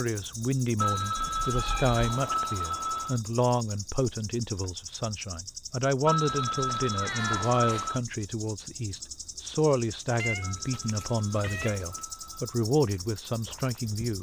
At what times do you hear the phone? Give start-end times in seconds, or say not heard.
0.8-3.2, 6.0-8.0, 10.4-12.6.